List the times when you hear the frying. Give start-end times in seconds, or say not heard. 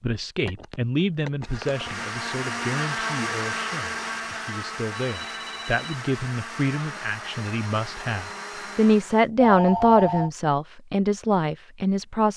not heard.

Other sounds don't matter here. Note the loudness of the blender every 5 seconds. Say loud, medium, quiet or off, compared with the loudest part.
loud, medium, off.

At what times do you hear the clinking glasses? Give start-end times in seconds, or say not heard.
not heard.